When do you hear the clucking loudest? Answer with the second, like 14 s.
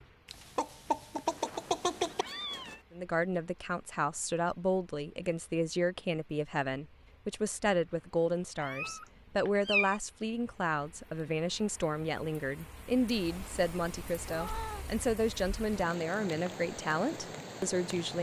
2 s.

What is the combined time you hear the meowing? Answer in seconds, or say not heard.
5 s.